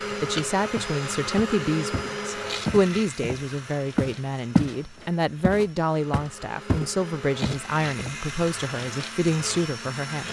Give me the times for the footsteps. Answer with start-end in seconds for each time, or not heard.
0.8-4.8, 5.4-8.2.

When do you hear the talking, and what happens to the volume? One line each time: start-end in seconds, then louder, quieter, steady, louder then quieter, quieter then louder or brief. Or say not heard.
0.0-10.2 steady.